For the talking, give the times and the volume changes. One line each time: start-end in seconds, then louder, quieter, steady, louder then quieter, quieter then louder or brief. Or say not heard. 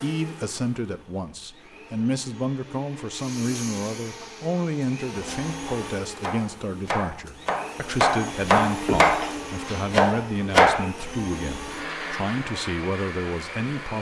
0.0-13.9 steady.